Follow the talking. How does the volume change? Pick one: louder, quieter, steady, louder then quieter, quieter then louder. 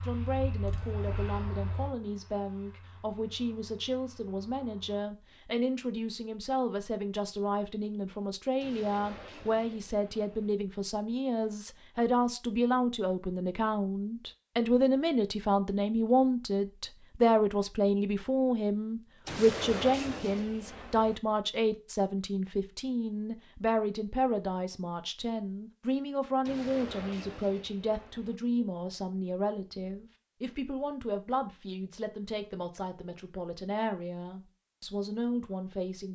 louder then quieter.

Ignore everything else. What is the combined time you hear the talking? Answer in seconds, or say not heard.
36 s.